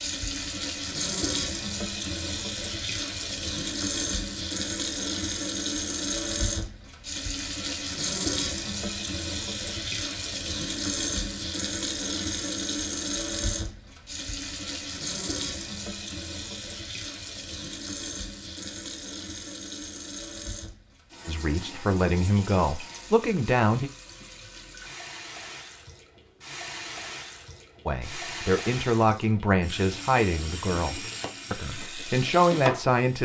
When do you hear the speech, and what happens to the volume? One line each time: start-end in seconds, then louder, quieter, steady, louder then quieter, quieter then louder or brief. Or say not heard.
21.2-23.9 brief
27.9-33.2 quieter then louder.